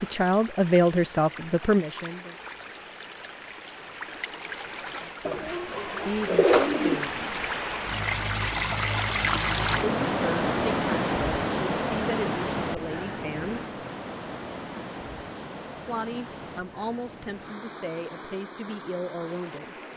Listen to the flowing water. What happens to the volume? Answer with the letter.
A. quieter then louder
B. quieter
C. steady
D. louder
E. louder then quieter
E.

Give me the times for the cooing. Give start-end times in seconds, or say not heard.
5.2-7.0.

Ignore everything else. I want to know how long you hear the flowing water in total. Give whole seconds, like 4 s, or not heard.
20 s.